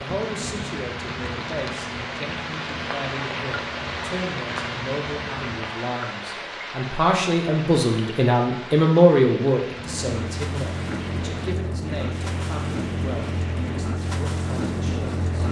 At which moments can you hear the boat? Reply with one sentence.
The boat can be heard from 0.0 to 5.8 s and from 9.7 to 15.4 s.